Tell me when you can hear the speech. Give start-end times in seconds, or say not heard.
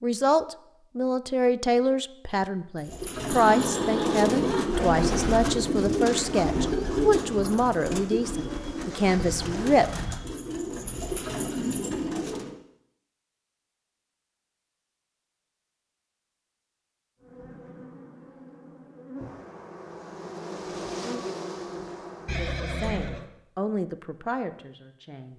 0.0-9.9, 22.4-25.3.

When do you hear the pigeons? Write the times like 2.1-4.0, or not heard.
2.8-12.6.